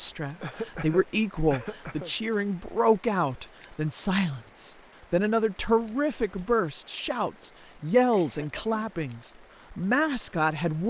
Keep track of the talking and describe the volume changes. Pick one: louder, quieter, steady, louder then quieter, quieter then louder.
steady.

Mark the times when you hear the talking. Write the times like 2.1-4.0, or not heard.
0.0-10.8.